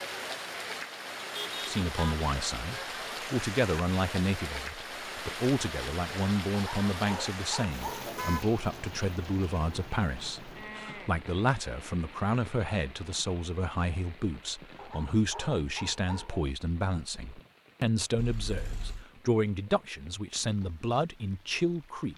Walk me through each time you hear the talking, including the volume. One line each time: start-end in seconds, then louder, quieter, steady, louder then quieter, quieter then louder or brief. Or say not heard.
1.6-22.1 steady.